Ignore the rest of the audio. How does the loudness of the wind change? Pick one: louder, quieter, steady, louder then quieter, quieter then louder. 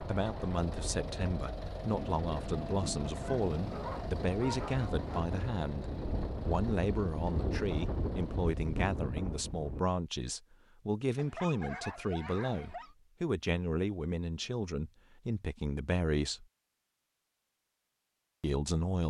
louder.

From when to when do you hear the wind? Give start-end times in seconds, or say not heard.
0.0-9.8.